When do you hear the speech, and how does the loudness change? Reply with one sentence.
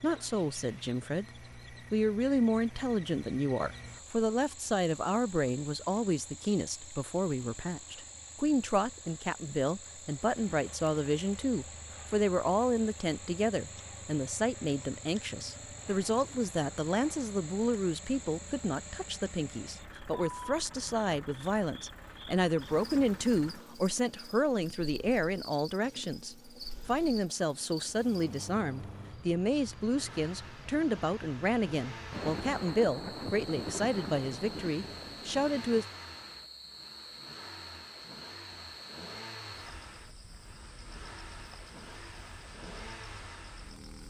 The speech can be heard from 0.0 to 35.9 s, at a steady volume.